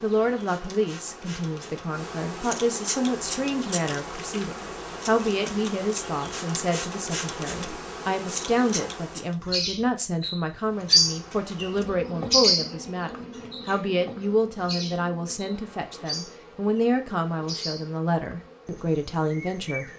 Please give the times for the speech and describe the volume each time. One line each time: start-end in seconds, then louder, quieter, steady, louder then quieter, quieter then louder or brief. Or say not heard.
0.0-19.9 steady.